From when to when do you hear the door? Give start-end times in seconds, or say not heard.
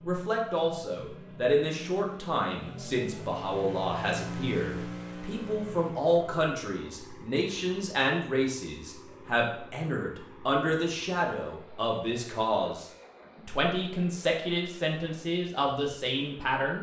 not heard.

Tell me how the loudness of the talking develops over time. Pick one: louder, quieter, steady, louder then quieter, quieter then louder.
steady.